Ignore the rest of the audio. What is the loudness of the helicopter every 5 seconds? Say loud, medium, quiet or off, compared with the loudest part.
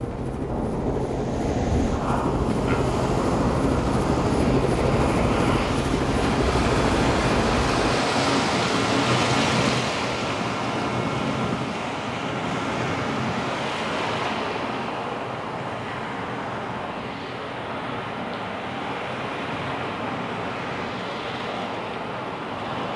loud, loud, medium, medium, medium.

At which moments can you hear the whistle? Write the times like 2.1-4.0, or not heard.
not heard.